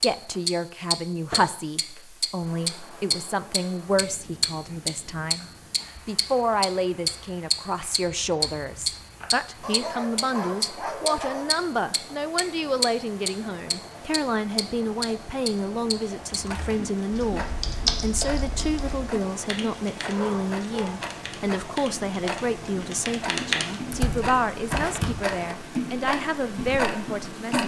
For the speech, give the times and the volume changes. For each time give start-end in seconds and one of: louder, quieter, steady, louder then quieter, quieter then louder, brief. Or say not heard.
0.0-27.6 steady.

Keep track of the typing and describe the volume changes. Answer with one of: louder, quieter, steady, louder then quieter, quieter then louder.
quieter then louder.